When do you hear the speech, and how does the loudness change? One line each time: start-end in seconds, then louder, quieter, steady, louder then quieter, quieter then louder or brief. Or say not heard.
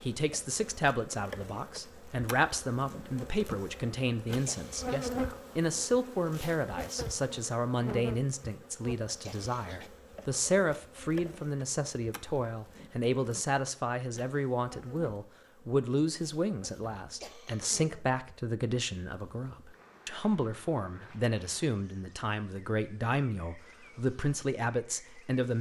0.0-25.5 steady.